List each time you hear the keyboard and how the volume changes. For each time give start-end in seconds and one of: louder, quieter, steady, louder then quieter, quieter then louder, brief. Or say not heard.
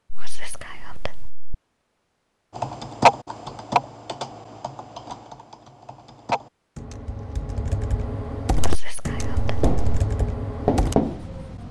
2.5-10.9 quieter then louder.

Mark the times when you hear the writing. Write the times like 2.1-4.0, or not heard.
9.6-11.6.